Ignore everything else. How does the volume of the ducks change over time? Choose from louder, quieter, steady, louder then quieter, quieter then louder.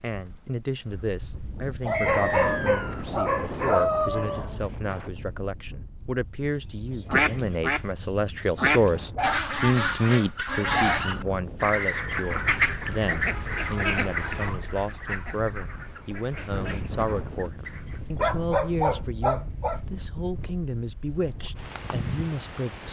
quieter.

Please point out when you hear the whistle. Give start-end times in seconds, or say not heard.
1.9-3.0, 11.7-12.4.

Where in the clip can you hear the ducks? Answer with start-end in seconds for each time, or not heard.
6.6-18.0.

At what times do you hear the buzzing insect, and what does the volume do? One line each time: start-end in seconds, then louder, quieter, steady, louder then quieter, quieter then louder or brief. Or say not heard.
not heard.